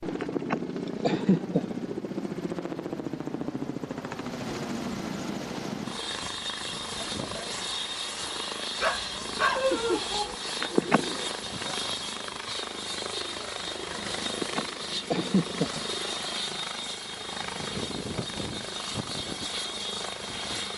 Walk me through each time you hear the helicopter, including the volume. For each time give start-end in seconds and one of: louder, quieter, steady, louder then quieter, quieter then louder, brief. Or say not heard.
0.0-20.7 steady.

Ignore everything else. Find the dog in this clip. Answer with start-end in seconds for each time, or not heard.
8.8-10.3.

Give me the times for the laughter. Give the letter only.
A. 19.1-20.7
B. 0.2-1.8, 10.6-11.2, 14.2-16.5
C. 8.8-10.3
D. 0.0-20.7
B.